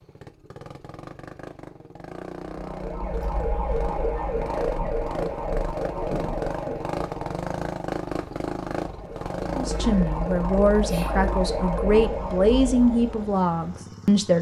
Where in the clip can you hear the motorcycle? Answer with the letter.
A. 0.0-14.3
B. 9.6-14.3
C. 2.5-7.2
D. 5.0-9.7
A.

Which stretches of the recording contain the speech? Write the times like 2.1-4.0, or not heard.
9.6-14.3.